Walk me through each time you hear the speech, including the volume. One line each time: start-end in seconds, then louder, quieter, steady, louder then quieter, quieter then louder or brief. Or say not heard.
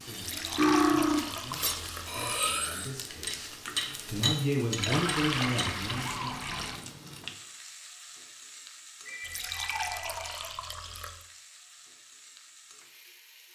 0.0-6.4 louder.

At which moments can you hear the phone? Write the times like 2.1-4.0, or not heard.
9.1-10.3.